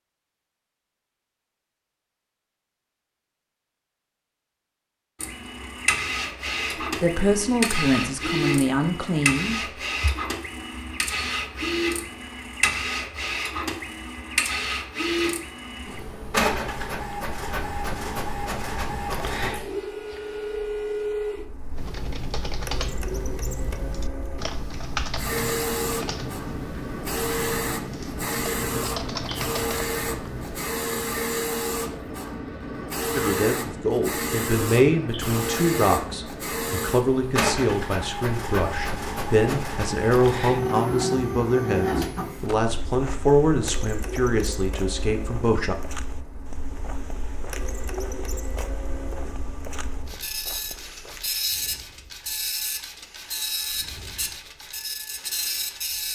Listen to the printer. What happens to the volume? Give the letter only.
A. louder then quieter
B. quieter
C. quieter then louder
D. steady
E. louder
B.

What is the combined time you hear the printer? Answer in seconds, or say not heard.
51 s.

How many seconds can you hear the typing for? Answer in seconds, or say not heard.
9 s.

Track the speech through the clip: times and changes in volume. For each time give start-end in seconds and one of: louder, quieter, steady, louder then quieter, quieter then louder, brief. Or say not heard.
7.0-9.6 brief
33.1-45.8 steady.